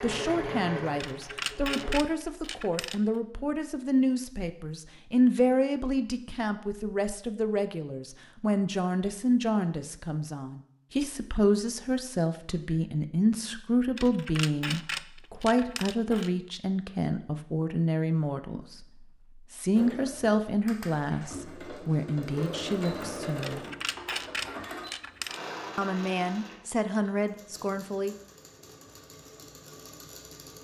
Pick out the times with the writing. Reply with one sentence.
You can't hear the writing here.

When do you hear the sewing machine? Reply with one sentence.
You can hear the sewing machine from 0.0 to 1.9 s and from 19.8 to 30.5 s.